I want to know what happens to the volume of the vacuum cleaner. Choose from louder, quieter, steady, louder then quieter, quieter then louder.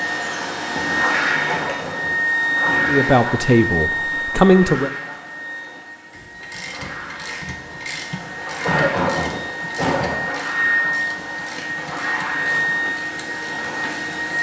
quieter then louder.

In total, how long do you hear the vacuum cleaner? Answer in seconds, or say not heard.
14 s.